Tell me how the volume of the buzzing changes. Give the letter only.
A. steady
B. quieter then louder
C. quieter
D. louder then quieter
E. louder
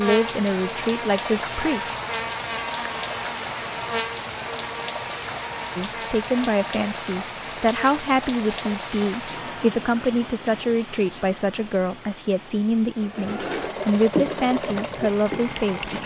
C.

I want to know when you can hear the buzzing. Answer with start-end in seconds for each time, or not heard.
0.0-9.8.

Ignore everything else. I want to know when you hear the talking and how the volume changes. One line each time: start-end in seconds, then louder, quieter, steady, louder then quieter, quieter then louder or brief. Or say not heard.
0.0-1.9 brief
5.8-15.9 steady.